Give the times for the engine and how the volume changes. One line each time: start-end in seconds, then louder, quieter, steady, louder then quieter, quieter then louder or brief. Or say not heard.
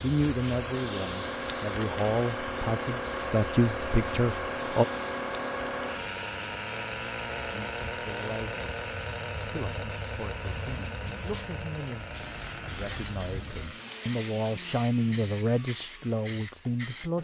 0.0-17.1 quieter.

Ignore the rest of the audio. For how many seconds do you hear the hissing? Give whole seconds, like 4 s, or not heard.
17 s.